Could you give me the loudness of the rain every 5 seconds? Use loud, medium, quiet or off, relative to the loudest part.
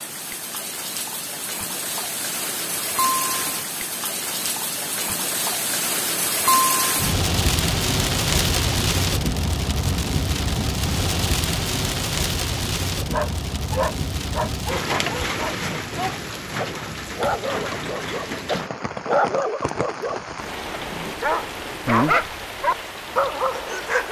medium, loud, loud, medium, medium.